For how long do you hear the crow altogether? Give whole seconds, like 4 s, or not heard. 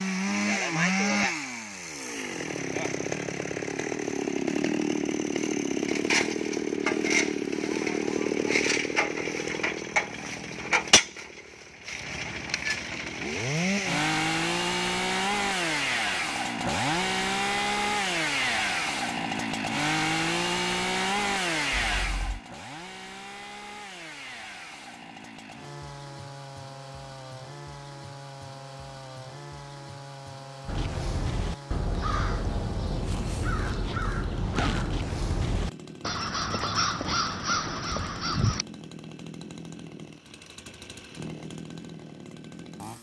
8 s.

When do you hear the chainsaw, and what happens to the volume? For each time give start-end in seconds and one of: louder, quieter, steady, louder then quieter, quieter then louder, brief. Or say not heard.
0.0-42.9 quieter.